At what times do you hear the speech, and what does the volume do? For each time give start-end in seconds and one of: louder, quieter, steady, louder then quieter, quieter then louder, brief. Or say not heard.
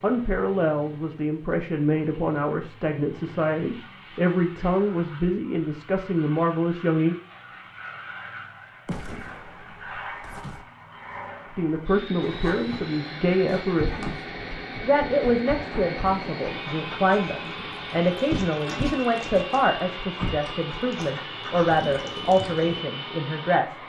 0.0-7.2 steady
11.5-14.2 brief
14.8-23.8 steady.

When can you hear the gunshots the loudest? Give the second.
9 s.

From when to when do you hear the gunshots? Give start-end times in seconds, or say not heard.
8.8-10.7.